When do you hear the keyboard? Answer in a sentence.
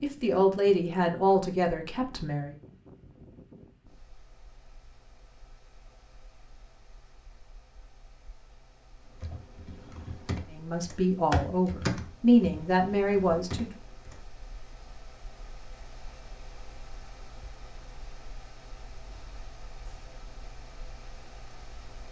The keyboard can be heard from 9.2 to 14.2 s.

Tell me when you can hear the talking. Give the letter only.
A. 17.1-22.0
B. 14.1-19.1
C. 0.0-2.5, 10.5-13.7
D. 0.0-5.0
C.